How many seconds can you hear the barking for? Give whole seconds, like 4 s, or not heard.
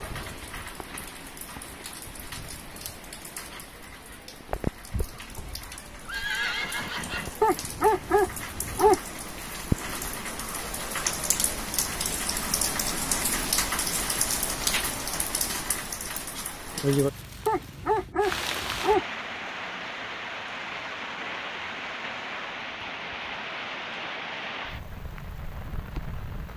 3 s.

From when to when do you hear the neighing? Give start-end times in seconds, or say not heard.
6.0-7.4.